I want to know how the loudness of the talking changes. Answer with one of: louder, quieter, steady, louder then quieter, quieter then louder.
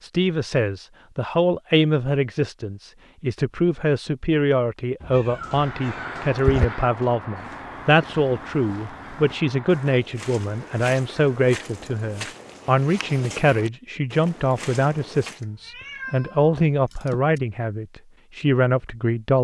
steady.